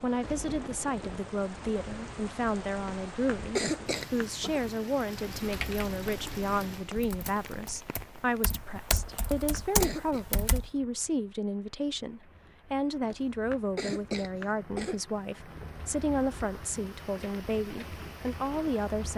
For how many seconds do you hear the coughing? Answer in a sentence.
The coughing can be heard for 5 seconds in total.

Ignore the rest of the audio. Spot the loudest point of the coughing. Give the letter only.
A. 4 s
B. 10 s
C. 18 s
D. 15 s
A.